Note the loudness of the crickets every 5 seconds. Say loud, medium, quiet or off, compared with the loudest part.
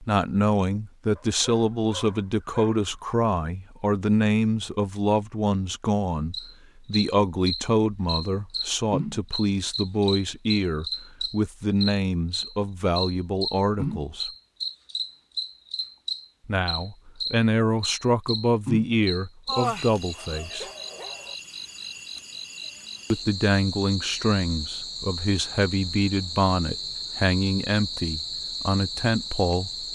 off, loud, loud, loud, medium, loud.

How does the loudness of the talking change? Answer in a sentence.
The loudness of the talking stays about the same.